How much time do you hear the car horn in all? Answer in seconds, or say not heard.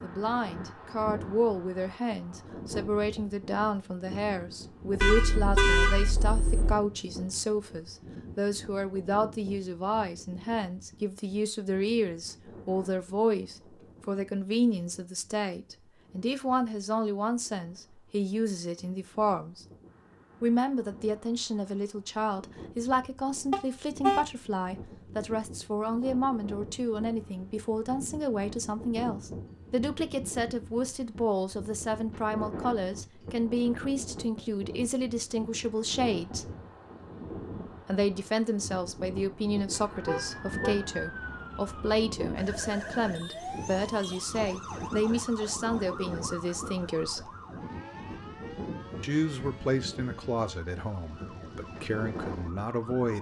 4 s.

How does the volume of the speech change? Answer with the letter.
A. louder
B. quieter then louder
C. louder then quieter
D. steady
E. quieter
D.